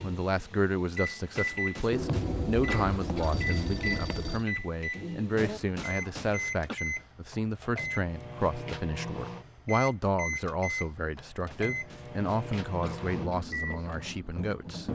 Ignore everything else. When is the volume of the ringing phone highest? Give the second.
2 s.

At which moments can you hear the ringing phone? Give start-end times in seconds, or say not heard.
1.9-4.5.